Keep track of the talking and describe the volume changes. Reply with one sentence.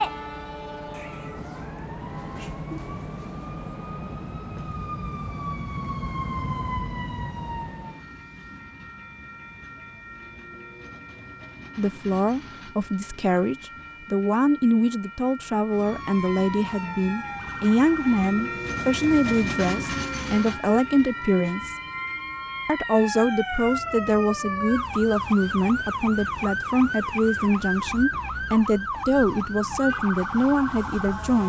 The volume of the talking stays about the same.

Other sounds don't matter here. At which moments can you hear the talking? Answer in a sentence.
You can hear the talking from 11.8 to 21.8 s and from 22.6 to 31.4 s.